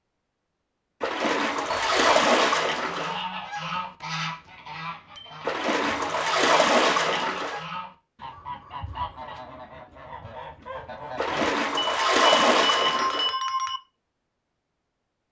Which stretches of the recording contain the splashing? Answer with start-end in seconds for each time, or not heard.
1.0-3.2, 5.5-7.7, 11.2-13.3.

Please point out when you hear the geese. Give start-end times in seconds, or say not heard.
2.7-11.6.